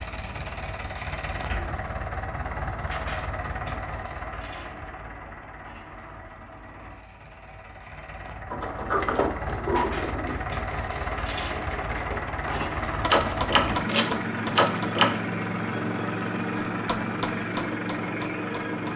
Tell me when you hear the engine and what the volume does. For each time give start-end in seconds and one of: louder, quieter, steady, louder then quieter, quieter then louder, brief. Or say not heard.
0.0-18.9 quieter then louder.